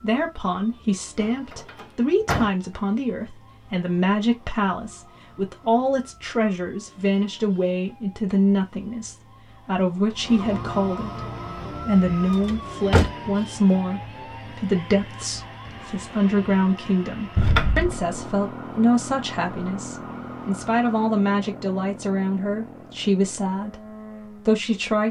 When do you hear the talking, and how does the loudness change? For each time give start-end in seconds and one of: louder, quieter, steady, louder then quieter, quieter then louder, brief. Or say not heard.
0.0-25.0 steady.